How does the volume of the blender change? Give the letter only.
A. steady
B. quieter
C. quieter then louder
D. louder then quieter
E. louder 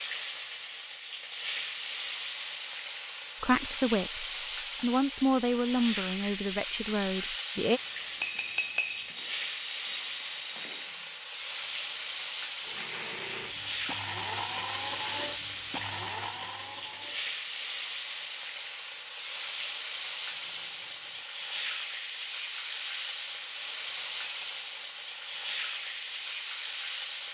E.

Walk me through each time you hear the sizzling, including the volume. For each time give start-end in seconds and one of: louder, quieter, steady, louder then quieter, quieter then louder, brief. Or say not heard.
0.0-27.2 steady.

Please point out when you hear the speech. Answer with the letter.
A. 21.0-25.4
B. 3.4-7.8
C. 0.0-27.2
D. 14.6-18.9
B.